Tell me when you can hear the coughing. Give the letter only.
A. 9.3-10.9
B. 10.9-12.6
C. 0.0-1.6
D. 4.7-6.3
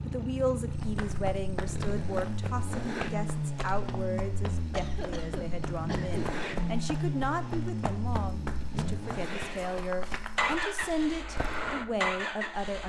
D.